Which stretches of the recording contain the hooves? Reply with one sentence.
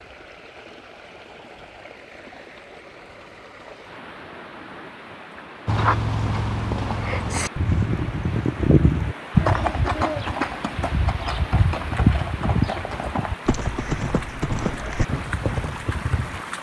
You can hear the hooves from 5.7 to 16.4 s.